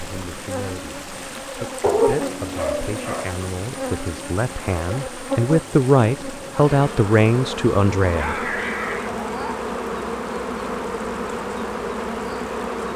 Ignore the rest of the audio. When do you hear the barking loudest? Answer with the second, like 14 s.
2 s.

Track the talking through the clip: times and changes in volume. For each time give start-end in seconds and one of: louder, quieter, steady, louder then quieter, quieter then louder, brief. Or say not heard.
0.0-8.3 louder.